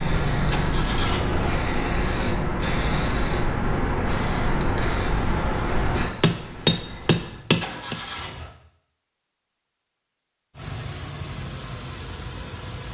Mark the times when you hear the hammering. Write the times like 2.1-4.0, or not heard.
6.2-8.0.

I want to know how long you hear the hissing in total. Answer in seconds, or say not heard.
7 s.